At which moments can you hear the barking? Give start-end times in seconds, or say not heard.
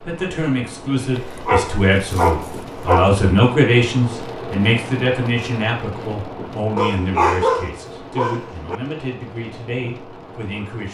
1.1-3.1, 6.8-8.8.